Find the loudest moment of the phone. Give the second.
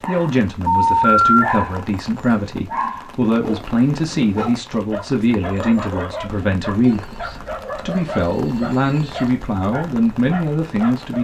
1 s.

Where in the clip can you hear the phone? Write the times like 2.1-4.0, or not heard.
0.7-1.6, 6.8-9.3.